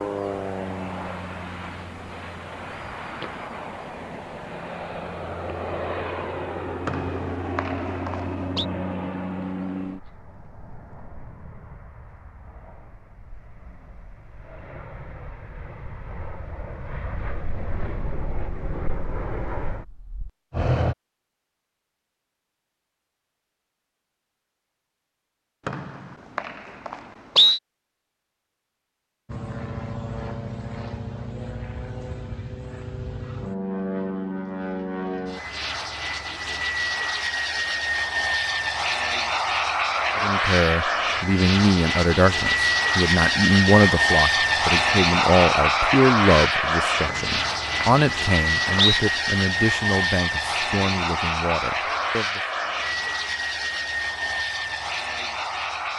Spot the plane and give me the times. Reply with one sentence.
You can hear the plane from 0.0 to 20.9 s and from 29.2 to 55.9 s.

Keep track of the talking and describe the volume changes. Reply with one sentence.
The loudness of the talking goes down.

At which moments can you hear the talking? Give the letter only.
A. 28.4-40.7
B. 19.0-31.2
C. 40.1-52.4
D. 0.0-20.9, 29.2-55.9
C.